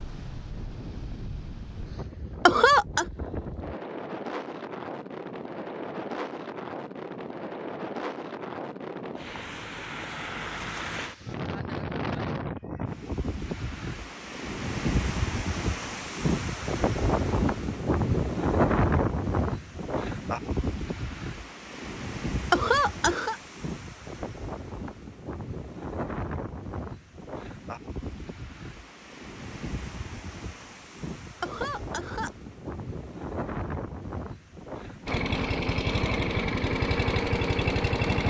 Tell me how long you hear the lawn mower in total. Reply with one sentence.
You can hear the lawn mower for 3 seconds altogether.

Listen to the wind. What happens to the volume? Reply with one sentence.
The volume of the wind goes up, then down.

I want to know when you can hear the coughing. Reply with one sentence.
The coughing can be heard from 2.5 to 3.0 s, from 22.5 to 23.4 s and from 31.4 to 32.3 s.